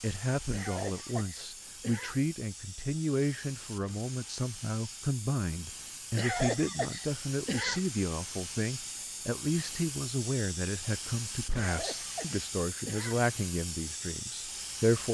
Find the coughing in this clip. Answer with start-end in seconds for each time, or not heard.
0.5-2.2, 6.2-7.8, 11.6-13.2.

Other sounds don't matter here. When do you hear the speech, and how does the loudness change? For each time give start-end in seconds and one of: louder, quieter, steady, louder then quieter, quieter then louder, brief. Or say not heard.
0.0-15.0 steady.